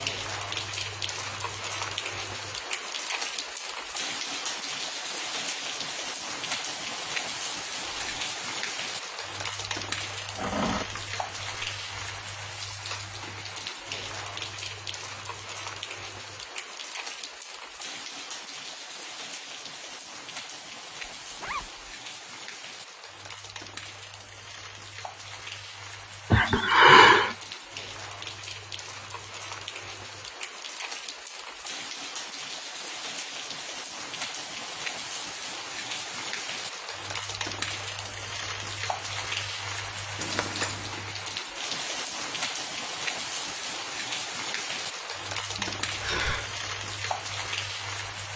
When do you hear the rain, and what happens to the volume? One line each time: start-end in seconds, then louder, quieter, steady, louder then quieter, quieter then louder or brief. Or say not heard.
0.0-48.3 quieter then louder.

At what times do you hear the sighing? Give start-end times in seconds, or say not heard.
10.3-12.1, 26.3-27.4, 45.5-46.5.